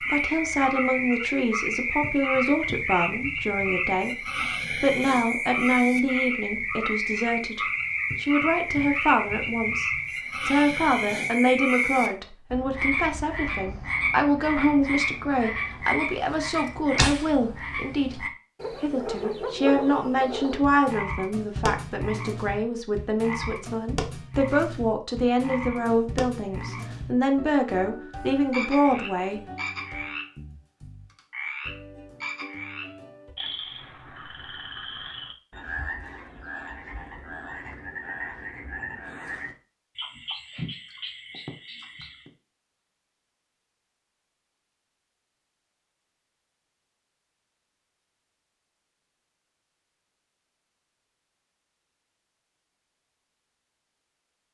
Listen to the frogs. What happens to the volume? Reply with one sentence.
The loudness of the frogs goes down.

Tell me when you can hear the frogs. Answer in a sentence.
The frogs can be heard from 0.0 to 42.3 s.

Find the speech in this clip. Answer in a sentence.
You can hear the speech from 0.0 to 29.4 s.